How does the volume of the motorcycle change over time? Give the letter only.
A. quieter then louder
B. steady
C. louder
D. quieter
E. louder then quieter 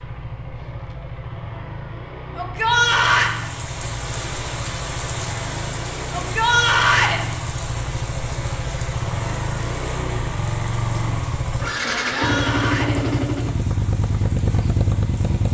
C.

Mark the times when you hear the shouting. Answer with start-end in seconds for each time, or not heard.
2.4-3.3, 6.2-7.2, 12.1-12.9.